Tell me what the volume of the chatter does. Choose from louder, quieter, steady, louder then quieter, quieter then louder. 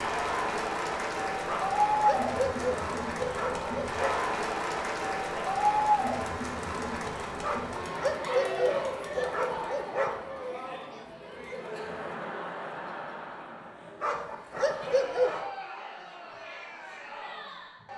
quieter.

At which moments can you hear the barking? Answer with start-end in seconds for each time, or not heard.
1.4-4.2, 7.4-10.3, 14.0-15.5.